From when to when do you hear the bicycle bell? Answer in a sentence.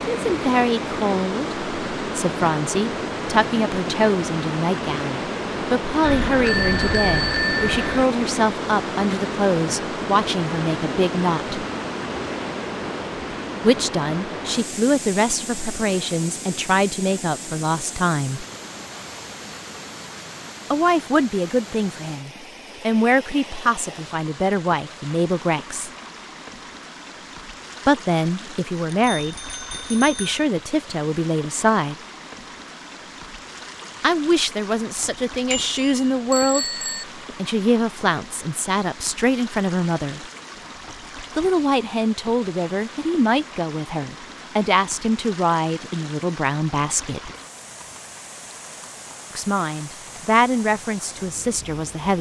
You can hear the bicycle bell from 6.0 to 8.1 s, from 28.9 to 30.4 s and from 35.5 to 37.0 s.